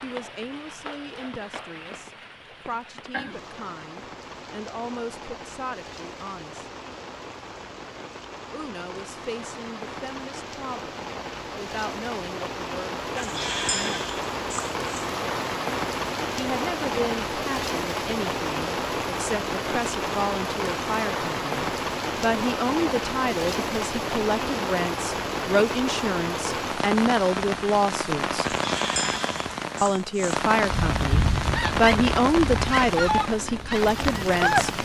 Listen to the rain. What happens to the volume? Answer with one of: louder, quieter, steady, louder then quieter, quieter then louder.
louder.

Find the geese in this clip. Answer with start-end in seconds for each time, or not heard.
30.7-34.7.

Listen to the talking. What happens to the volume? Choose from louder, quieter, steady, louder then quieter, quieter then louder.
louder.